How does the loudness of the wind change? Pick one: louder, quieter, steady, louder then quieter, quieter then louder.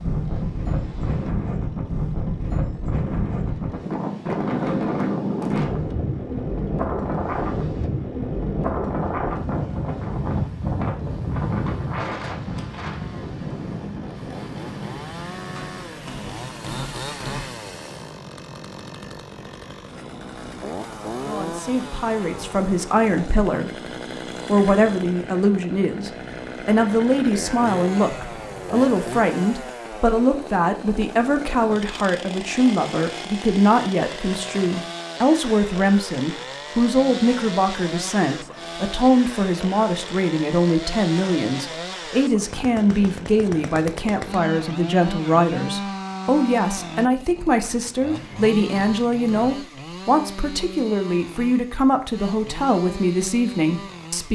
quieter.